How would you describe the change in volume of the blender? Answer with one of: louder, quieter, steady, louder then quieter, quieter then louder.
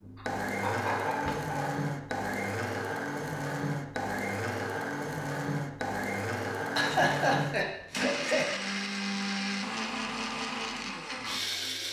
steady.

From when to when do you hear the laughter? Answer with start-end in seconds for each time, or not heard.
0.1-1.8, 6.7-8.5.